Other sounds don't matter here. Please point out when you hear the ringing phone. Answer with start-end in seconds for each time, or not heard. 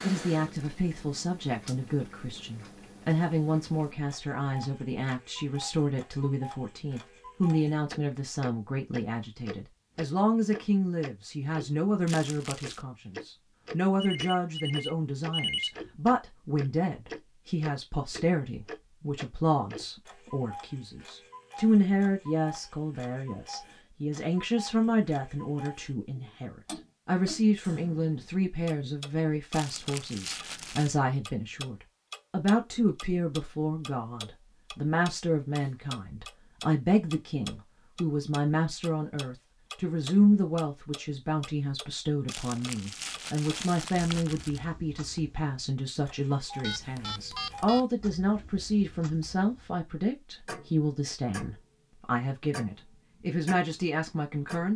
14.0-15.8, 46.6-47.9.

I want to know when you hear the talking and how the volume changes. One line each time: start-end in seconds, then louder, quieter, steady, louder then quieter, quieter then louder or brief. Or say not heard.
0.0-54.7 steady.